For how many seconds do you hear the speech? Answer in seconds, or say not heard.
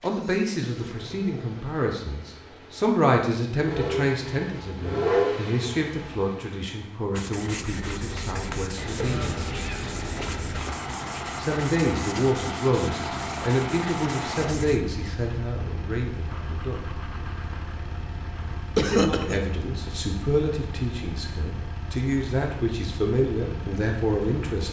21 s.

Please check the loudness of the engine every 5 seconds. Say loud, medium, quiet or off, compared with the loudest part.
medium, loud, loud, medium, medium.